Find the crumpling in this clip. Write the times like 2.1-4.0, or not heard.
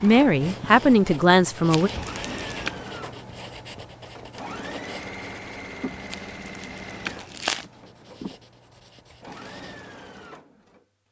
1.7-2.7, 6.1-7.7.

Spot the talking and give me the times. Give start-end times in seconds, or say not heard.
0.0-1.9.